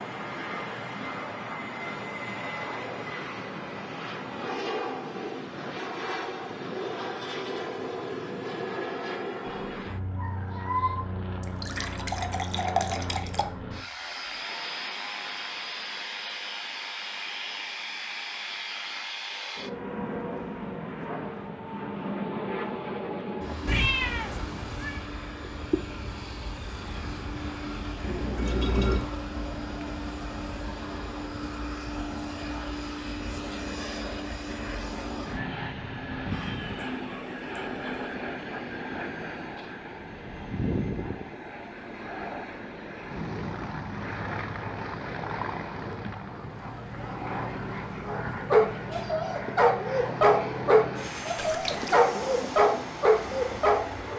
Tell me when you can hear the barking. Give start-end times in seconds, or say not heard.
48.0-54.1.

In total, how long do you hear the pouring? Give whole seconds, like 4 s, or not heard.
4 s.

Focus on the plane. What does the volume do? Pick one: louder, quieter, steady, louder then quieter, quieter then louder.
steady.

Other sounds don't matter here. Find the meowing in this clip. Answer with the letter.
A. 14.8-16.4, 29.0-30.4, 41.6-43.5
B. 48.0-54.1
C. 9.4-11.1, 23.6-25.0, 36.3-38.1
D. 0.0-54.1
C.